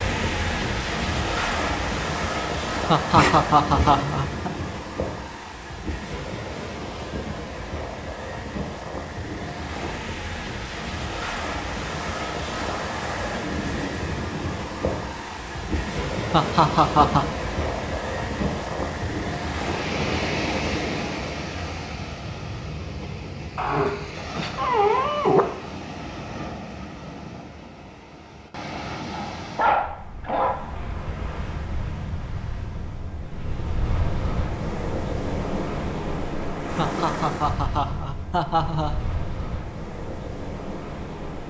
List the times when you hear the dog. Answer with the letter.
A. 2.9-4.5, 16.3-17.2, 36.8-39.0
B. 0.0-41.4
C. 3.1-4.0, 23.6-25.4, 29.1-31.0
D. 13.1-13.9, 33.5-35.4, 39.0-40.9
C.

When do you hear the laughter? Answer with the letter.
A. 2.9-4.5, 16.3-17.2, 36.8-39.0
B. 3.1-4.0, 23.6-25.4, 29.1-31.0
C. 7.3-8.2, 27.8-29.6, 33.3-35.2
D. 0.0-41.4
A.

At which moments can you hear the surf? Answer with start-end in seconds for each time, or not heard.
0.0-41.4.